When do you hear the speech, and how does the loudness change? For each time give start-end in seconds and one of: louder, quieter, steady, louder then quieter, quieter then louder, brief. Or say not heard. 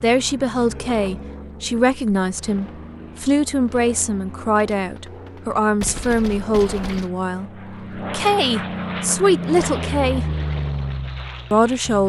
0.0-10.2 steady
11.5-12.0 brief.